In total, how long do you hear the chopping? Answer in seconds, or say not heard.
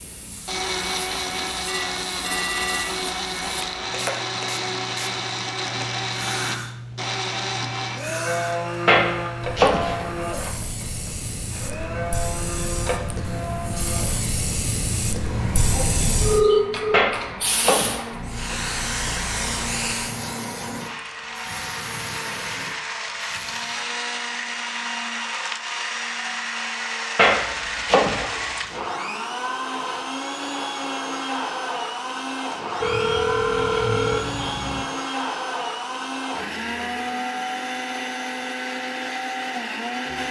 5 s.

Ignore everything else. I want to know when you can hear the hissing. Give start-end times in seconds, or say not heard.
0.0-23.9.